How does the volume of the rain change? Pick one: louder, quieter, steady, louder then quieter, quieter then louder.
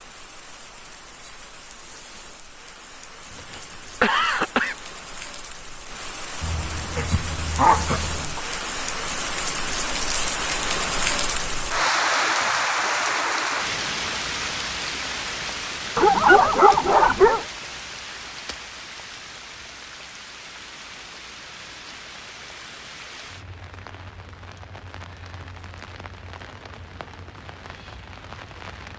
louder then quieter.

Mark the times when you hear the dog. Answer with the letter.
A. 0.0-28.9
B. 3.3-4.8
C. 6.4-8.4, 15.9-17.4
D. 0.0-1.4
C.